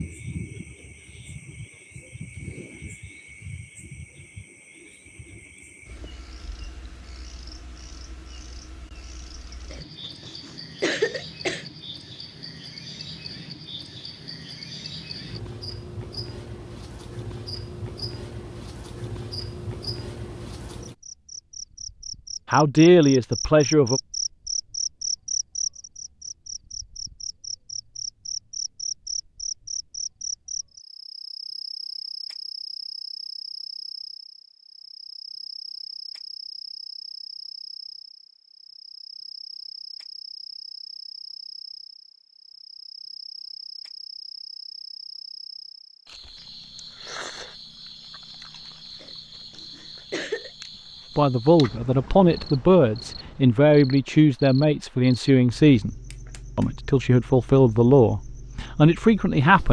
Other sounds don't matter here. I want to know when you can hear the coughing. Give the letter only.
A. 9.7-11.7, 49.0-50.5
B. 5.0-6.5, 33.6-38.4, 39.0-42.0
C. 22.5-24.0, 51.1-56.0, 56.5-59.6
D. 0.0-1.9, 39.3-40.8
A.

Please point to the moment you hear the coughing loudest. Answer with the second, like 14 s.
11 s.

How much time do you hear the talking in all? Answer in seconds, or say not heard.
9 s.